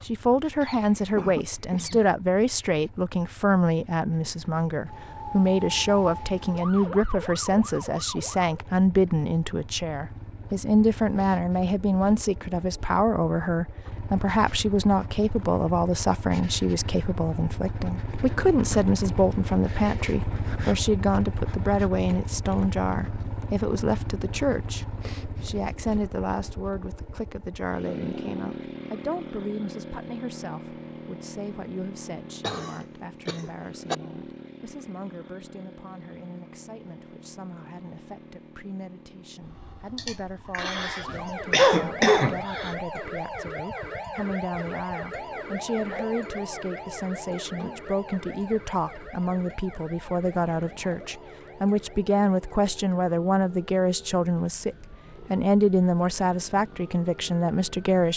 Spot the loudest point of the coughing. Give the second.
42 s.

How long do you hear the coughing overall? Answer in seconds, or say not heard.
6 s.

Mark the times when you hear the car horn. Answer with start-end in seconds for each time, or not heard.
not heard.